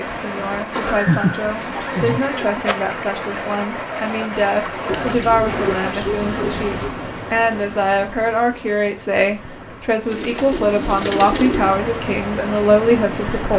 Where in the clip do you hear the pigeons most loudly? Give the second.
1 s.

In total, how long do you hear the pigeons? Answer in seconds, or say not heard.
6 s.